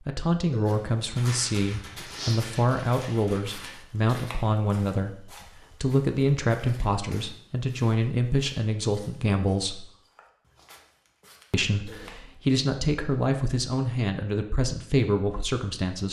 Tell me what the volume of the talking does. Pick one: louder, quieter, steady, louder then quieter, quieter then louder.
steady.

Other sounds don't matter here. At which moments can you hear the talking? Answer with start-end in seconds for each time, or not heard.
0.1-9.8, 11.5-16.0.